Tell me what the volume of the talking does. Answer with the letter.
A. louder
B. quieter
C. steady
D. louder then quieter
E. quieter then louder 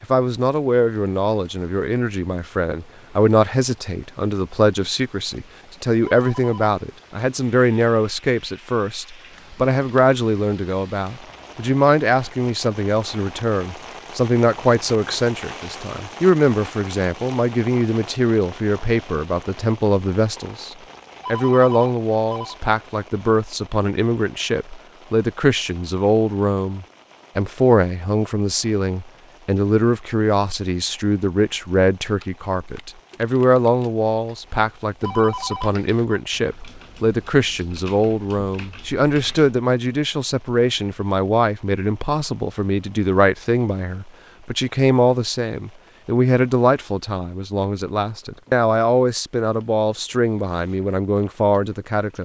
C.